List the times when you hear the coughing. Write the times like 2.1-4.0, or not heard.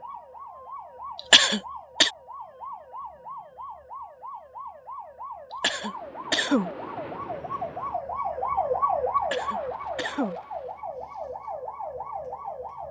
1.1-2.1, 5.5-6.7, 9.2-10.3.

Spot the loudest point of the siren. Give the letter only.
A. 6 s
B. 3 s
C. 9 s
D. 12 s
C.